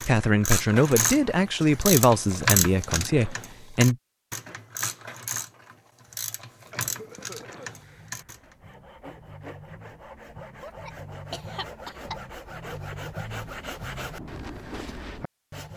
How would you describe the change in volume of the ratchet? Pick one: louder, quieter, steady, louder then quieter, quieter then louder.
quieter.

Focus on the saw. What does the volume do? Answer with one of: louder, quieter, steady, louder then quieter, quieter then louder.
louder.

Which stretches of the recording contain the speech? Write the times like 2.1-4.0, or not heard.
0.0-4.0.